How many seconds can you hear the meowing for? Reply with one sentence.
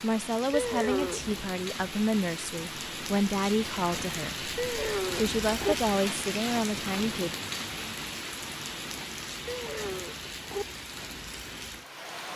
The meowing can be heard for 3 seconds in total.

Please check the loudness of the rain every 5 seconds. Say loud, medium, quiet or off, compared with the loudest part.
loud, loud, medium.